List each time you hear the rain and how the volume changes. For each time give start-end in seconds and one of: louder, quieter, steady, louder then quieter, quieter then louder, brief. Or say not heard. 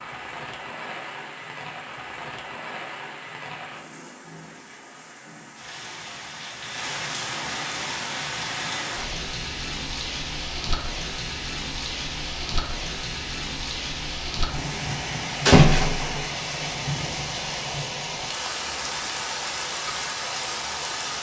0.0-21.1 louder.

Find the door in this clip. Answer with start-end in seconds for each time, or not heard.
15.4-16.2.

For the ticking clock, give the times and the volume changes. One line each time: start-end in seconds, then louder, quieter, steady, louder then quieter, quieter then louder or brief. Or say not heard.
not heard.